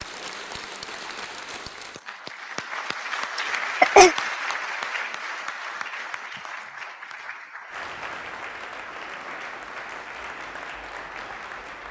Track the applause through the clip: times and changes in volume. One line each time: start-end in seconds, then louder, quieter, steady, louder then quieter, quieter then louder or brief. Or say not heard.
0.0-11.8 louder then quieter.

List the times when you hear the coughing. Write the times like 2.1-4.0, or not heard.
3.4-4.2.